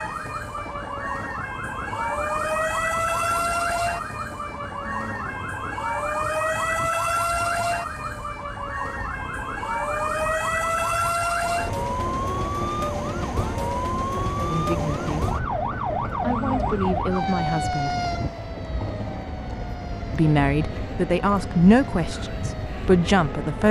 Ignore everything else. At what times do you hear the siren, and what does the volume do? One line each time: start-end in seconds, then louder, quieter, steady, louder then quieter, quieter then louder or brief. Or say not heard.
0.0-23.6 quieter.